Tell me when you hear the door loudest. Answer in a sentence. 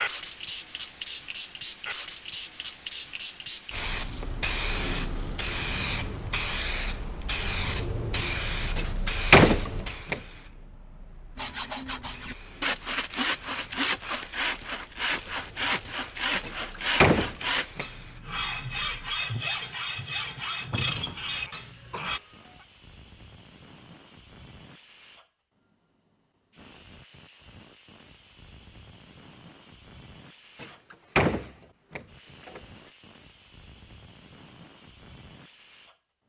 The volume of the door peaks at 9 seconds.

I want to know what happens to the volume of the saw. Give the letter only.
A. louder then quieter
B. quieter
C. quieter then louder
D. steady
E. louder
D.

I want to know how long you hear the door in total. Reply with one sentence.
The door can be heard for 5 seconds in total.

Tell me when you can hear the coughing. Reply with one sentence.
You can hear the coughing from 21.4 to 22.6 s.